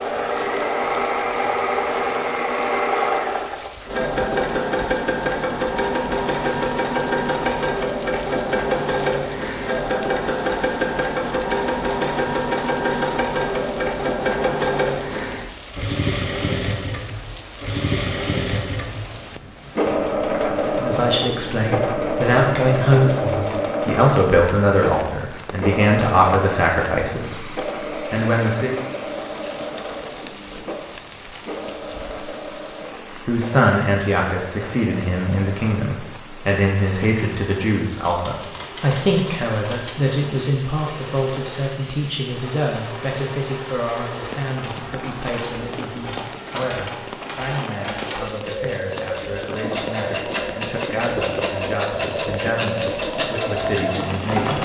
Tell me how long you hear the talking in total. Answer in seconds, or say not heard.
30 s.